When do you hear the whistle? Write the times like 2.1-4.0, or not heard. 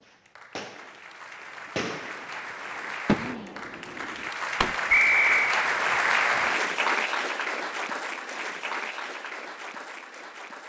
4.9-5.5.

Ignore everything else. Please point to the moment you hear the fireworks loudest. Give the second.
3 s.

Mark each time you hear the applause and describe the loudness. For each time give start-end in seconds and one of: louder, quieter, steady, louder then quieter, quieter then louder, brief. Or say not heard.
0.0-10.6 louder then quieter.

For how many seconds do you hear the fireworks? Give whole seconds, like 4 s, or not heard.
5 s.